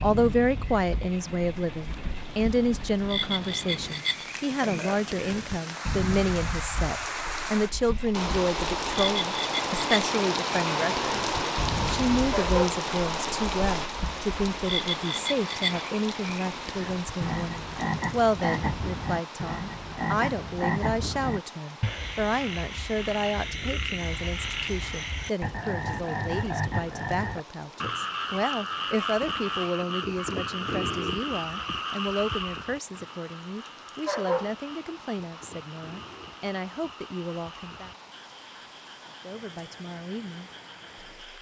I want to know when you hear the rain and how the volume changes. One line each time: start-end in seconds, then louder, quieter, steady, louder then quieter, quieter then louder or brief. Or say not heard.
0.0-41.3 louder then quieter.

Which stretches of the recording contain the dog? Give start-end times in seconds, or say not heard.
12.3-12.8, 34.0-34.5.